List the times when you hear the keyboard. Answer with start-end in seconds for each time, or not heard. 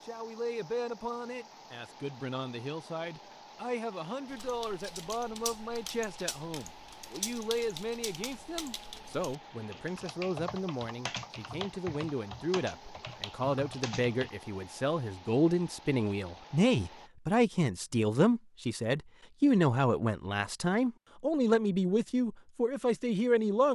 4.2-14.3.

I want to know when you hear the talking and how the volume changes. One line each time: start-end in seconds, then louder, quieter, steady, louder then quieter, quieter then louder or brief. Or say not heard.
0.1-23.6 louder.